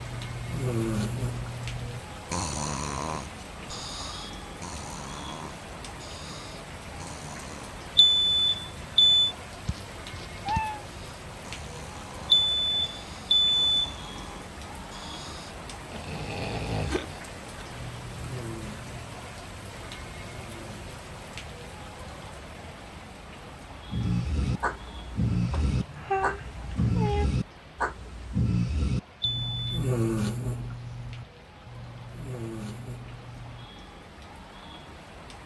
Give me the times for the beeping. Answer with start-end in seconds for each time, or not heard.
8.0-9.3, 12.3-13.9, 29.2-29.6.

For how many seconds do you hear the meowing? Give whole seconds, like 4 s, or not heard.
3 s.